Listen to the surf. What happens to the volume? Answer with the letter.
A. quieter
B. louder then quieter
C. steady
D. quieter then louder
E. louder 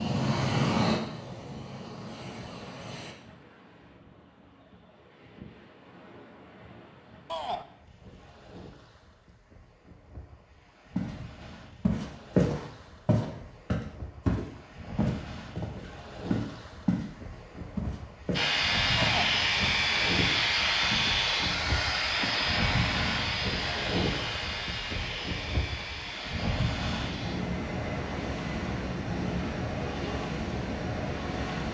E.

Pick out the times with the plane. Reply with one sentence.
You can hear the plane from 0.0 to 3.1 s and from 18.3 to 31.6 s.